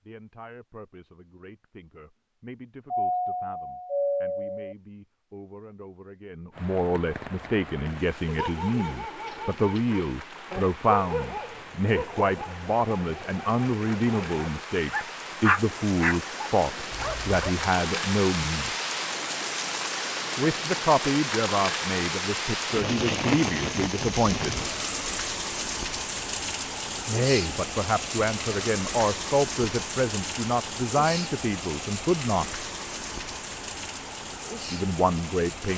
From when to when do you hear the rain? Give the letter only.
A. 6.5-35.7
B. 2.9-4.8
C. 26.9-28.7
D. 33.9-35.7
A.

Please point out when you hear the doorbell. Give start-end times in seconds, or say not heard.
2.9-4.8.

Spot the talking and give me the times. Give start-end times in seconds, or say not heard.
0.1-18.8, 20.4-24.6, 27.1-32.6, 34.6-35.7.